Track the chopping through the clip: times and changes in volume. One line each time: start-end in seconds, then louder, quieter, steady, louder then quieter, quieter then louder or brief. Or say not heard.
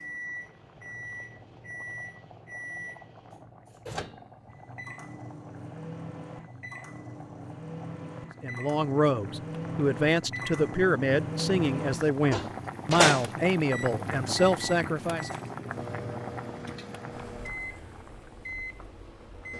not heard.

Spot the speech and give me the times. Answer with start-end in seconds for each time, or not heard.
8.4-15.3.